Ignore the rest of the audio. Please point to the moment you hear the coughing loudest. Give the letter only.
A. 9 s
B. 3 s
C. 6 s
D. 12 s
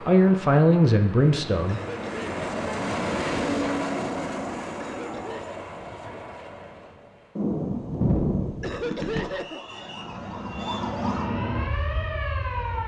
A.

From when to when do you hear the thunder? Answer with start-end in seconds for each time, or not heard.
7.3-9.3.